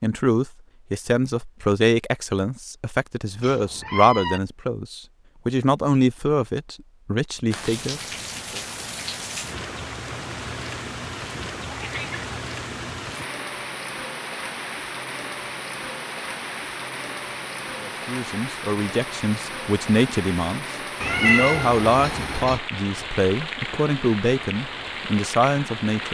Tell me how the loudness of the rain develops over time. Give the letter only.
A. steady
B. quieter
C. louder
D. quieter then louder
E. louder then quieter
A.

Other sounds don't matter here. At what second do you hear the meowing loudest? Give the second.
21 s.